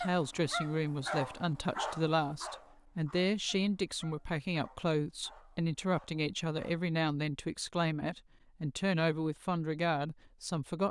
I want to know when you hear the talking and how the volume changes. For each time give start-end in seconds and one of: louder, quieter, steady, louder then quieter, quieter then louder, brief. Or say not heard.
0.0-10.8 steady.